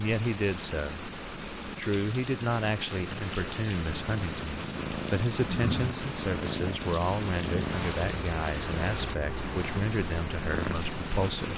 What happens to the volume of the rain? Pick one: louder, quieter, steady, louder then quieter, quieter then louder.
steady.